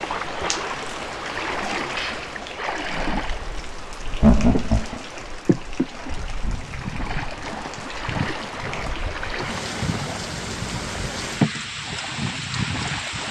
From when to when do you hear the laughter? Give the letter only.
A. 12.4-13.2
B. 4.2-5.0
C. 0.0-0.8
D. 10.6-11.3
B.